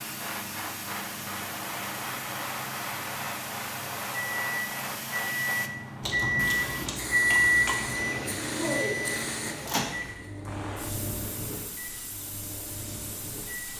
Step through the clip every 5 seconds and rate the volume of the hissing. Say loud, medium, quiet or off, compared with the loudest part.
loud, loud, medium.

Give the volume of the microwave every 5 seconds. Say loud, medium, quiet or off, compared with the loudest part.
quiet, loud, quiet.